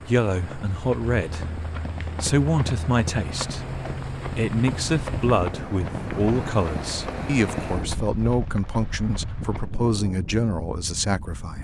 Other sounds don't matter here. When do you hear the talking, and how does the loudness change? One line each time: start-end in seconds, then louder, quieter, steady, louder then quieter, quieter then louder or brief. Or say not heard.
0.0-11.5 steady.